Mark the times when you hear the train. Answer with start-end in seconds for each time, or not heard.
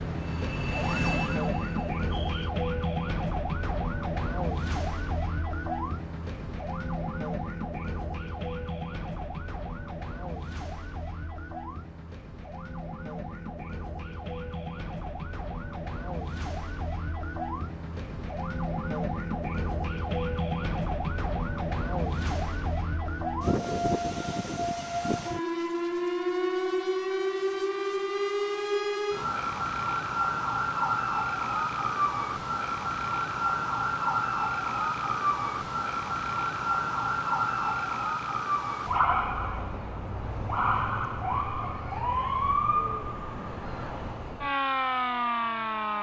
0.0-2.5.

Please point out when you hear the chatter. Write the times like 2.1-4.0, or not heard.
not heard.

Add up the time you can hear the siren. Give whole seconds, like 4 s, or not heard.
46 s.